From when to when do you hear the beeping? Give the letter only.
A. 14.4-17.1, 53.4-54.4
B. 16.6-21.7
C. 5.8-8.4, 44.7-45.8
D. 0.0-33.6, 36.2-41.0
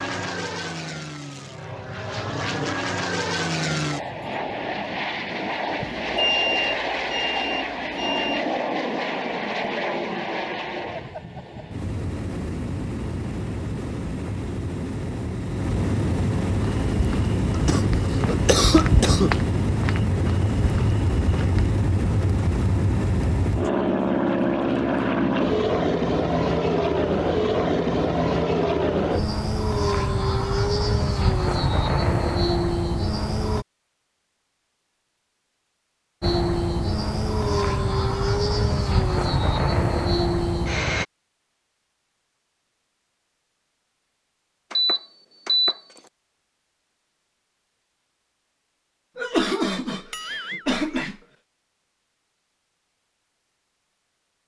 C.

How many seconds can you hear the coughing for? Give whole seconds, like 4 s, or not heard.
4 s.